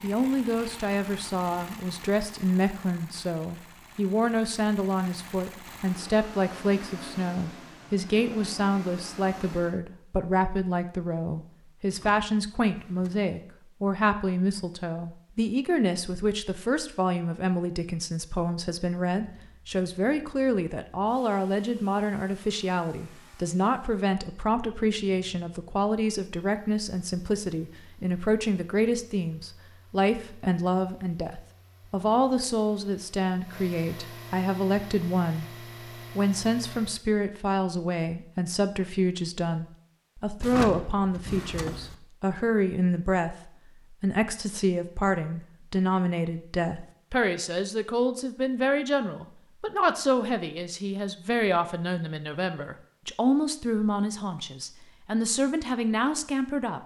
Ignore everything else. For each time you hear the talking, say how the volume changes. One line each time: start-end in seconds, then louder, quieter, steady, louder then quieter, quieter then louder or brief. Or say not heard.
0.0-35.5 steady
36.1-56.8 steady.